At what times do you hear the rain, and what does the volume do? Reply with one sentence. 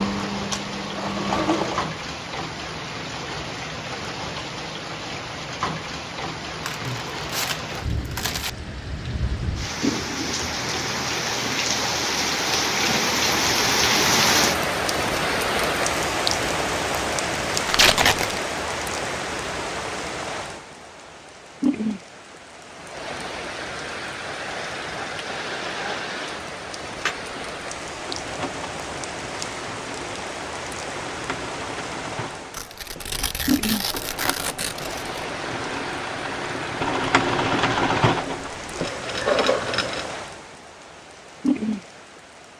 The rain can be heard from 0.0 to 42.5 s, getting louder then quieter.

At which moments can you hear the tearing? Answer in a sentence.
The tearing can be heard from 6.7 to 8.5 s, from 17.6 to 18.4 s and from 32.5 to 35.2 s.